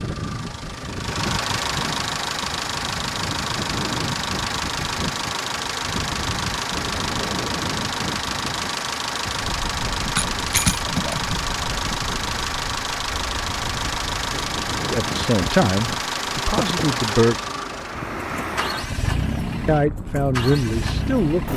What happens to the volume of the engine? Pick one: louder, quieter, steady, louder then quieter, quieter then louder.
steady.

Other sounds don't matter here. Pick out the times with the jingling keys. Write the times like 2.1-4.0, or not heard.
10.2-11.4.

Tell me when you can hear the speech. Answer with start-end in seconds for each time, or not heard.
14.9-17.4, 19.6-21.5.